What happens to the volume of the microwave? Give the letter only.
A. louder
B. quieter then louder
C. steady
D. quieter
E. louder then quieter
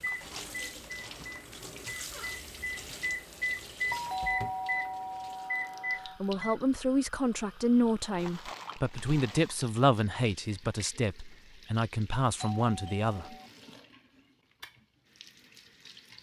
A.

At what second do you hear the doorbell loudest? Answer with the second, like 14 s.
4 s.